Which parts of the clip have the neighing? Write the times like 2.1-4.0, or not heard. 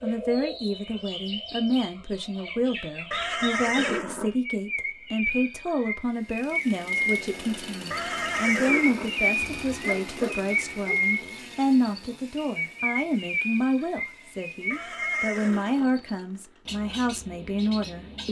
3.1-4.3, 7.9-9.2, 14.7-15.9.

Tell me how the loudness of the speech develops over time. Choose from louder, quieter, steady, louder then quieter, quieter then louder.
steady.